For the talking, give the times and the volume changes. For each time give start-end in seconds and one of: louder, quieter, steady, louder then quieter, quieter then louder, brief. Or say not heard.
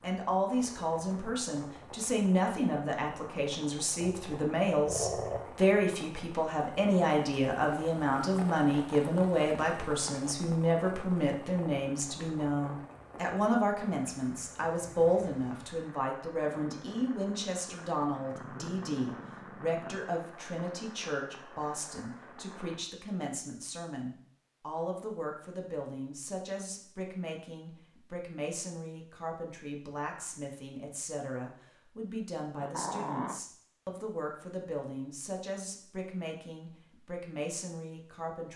0.0-38.5 quieter.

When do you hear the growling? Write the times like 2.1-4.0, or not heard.
4.0-5.5, 18.1-20.1, 32.5-33.4.